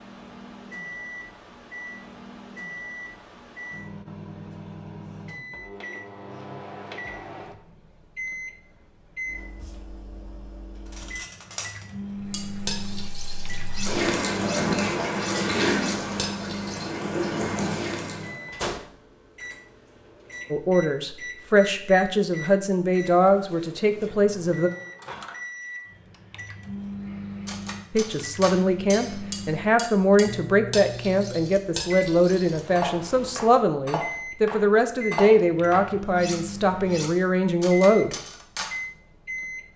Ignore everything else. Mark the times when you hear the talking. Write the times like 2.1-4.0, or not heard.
20.5-24.7, 27.9-38.1.